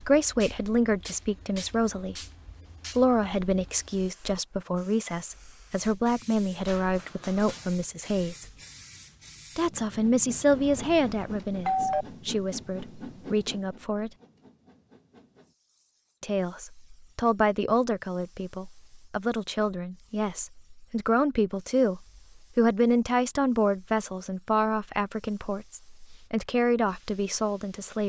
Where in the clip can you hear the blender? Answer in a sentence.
The blender can't be heard in this clip.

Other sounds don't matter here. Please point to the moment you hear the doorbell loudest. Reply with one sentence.
The loudest moment of the doorbell is at 12 seconds.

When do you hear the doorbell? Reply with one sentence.
You can hear the doorbell from 10.5 to 12.1 s.